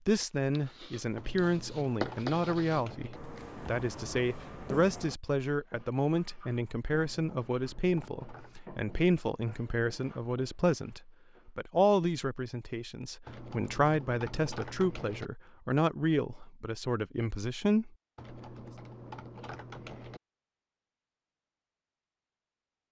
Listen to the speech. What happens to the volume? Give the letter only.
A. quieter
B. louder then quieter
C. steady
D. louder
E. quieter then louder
C.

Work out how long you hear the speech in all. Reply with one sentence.
The speech can be heard for 18 seconds in total.